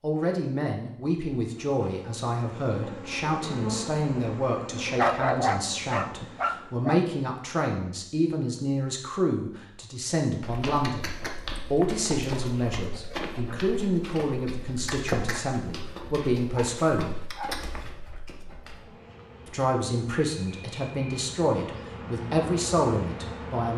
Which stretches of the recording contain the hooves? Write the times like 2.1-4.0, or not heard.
10.4-18.9.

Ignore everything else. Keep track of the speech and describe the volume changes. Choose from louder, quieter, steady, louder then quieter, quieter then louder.
steady.